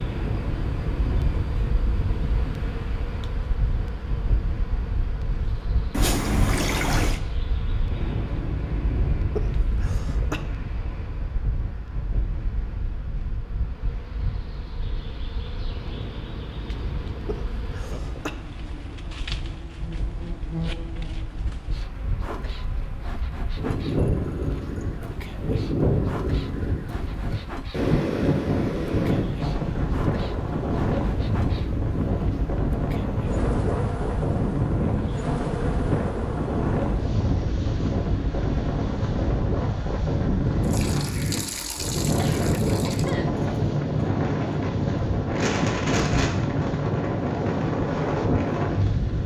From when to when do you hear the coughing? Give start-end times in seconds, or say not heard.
9.3-10.4, 17.2-18.4, 42.0-43.3.